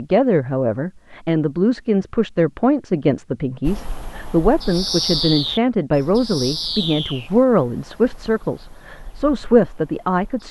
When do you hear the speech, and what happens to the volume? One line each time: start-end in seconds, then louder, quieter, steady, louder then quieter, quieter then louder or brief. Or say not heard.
0.0-10.4 steady.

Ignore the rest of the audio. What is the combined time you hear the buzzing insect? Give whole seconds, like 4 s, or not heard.
not heard.